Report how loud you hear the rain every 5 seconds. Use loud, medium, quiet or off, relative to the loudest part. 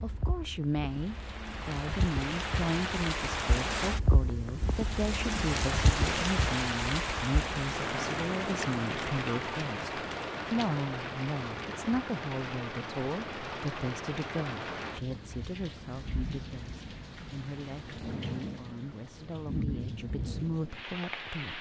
loud, loud, medium, medium, medium.